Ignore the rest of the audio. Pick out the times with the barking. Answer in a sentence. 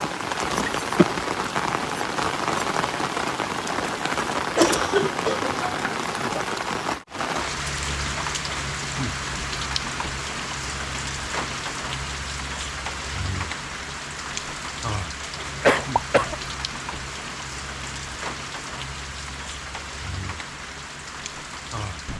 You can't hear the barking here.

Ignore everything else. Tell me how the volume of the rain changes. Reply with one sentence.
The loudness of the rain goes down.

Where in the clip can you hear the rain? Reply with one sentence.
You can hear the rain from 0.0 to 22.1 s.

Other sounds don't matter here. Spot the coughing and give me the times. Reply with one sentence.
The coughing can be heard from 4.5 to 6.0 s and from 15.4 to 16.4 s.